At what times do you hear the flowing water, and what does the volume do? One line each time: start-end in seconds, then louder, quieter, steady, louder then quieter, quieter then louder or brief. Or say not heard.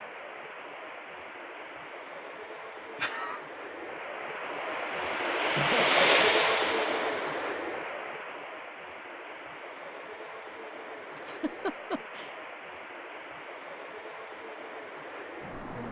0.0-15.8 louder then quieter.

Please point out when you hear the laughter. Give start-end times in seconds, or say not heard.
2.8-3.4, 5.5-6.2, 11.2-12.3.